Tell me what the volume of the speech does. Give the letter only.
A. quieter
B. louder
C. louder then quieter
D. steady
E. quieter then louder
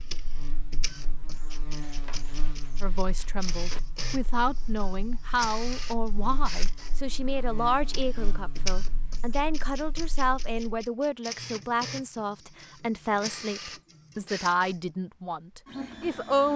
D.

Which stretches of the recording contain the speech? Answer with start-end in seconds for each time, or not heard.
2.8-16.5.